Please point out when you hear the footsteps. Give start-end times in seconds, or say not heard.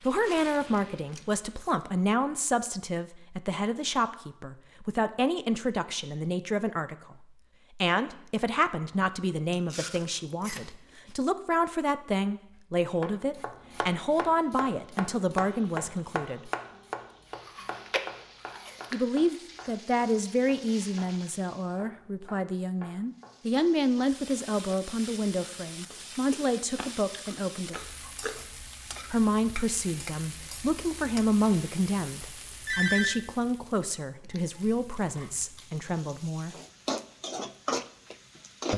not heard.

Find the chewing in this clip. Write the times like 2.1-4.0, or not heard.
0.2-1.9, 9.5-11.2, 17.4-18.9, 25.9-28.4, 34.2-35.9.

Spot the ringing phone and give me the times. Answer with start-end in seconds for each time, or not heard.
32.2-33.2.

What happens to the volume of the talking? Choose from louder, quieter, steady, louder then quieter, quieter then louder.
steady.